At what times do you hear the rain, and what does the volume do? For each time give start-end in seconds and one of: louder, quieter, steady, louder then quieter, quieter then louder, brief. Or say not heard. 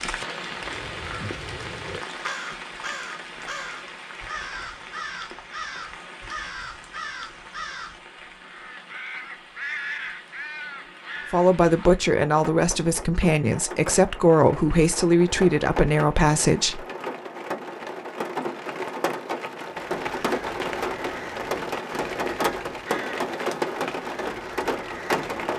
0.0-25.5 quieter then louder.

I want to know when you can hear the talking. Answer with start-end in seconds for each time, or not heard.
11.3-16.9.